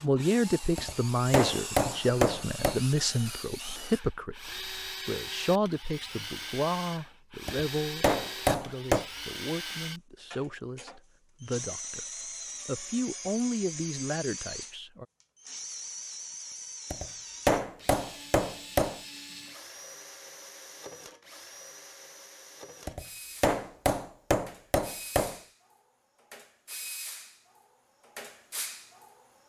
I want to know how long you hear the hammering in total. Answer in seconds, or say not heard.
8 s.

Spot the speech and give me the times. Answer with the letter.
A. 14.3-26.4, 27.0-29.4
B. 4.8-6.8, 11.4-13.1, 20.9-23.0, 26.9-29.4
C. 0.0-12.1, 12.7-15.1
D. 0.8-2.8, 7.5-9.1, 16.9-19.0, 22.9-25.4
C.